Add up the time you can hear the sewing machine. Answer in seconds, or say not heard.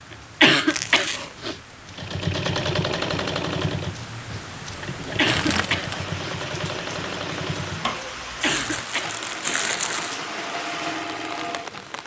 10 s.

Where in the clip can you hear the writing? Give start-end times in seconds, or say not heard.
not heard.